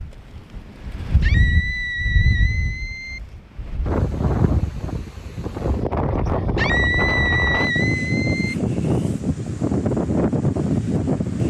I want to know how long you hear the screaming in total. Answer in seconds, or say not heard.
4 s.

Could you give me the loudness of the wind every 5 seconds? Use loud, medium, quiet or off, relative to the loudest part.
medium, loud, loud.